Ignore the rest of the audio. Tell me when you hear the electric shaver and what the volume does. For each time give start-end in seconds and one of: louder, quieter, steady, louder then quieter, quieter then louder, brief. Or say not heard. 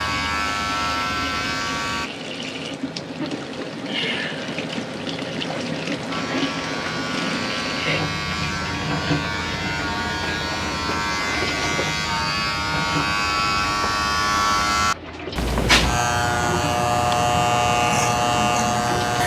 0.0-2.1 brief
6.1-19.2 louder.